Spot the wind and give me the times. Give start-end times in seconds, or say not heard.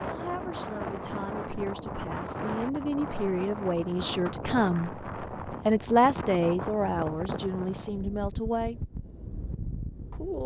0.0-10.4.